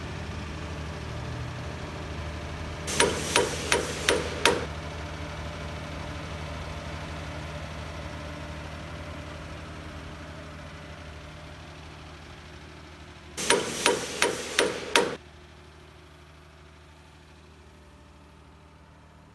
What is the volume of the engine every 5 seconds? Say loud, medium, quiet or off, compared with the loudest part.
loud, loud, medium, quiet.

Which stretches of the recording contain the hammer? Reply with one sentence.
You can hear the hammer from 2.9 to 4.7 s and from 13.3 to 15.2 s.